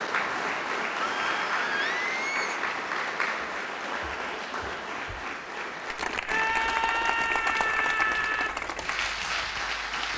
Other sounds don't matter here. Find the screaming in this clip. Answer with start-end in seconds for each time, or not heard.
1.0-2.6, 6.2-8.5.